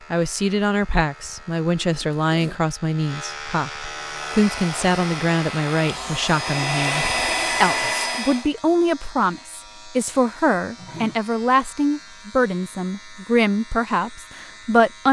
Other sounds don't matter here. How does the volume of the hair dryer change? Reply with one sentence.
The loudness of the hair dryer goes up.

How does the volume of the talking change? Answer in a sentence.
The volume of the talking stays about the same.